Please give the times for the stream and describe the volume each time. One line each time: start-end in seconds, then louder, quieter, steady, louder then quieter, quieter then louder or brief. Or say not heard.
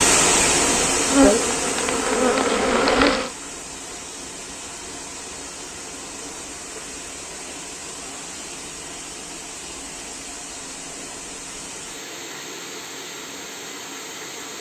0.0-14.5 quieter.